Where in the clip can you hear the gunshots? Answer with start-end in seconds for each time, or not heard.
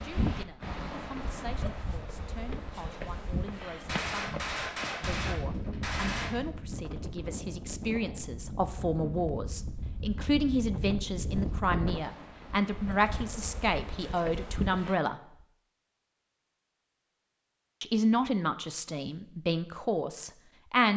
3.9-6.4.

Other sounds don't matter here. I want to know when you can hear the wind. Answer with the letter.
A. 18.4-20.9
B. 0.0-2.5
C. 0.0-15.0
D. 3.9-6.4
C.